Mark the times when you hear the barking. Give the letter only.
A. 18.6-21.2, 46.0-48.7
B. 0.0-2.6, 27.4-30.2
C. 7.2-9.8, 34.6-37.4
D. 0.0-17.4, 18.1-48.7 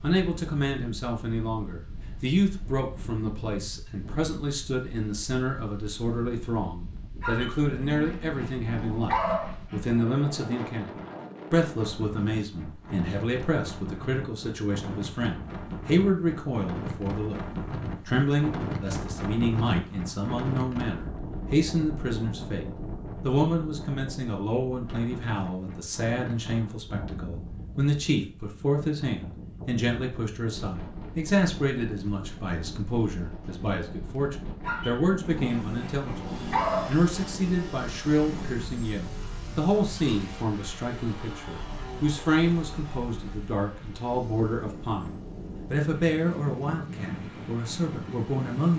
C.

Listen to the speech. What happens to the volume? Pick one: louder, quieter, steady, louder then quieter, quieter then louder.
steady.